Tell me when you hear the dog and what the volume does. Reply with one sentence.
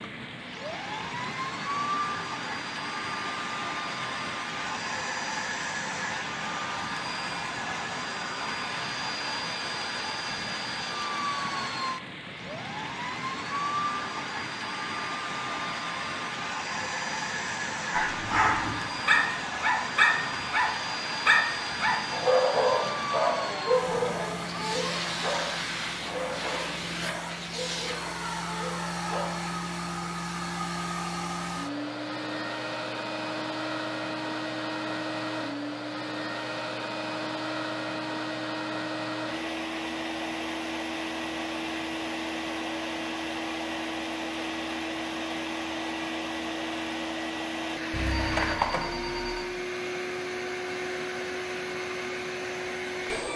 You can hear the dog from 17.9 to 29.3 s, getting quieter.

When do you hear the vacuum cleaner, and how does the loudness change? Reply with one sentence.
You can hear the vacuum cleaner from 0.0 to 53.3 s, at a steady volume.